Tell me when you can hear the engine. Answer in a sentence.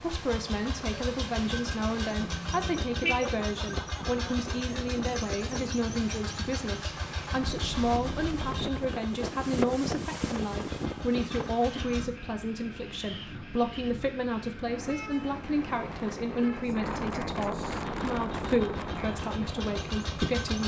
You can hear the engine from 0.0 to 12.1 s and from 17.9 to 20.6 s.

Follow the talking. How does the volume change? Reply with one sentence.
The volume of the talking stays about the same.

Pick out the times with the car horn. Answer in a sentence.
The car horn can be heard from 2.2 to 3.4 s, from 7.4 to 8.7 s and from 14.7 to 16.6 s.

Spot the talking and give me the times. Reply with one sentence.
You can hear the talking from 0.0 to 20.6 s.